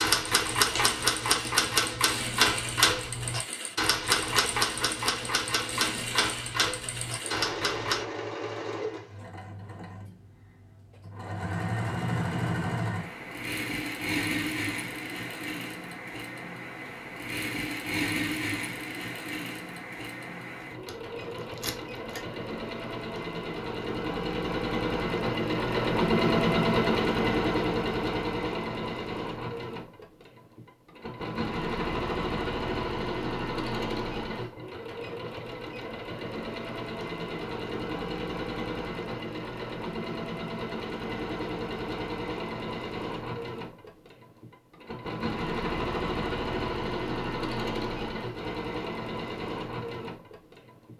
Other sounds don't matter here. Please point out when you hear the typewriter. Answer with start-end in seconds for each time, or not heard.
0.0-8.1.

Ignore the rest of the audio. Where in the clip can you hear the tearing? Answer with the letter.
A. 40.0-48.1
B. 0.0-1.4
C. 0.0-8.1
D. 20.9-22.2
D.